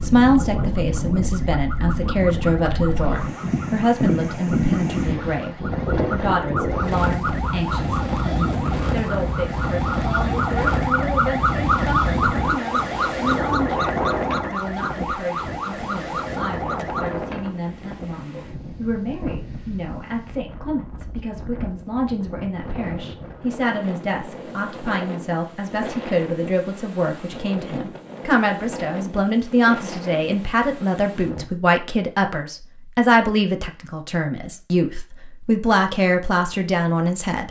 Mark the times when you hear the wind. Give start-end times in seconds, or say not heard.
0.0-31.5.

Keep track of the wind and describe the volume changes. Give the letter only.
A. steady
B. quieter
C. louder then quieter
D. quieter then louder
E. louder
B.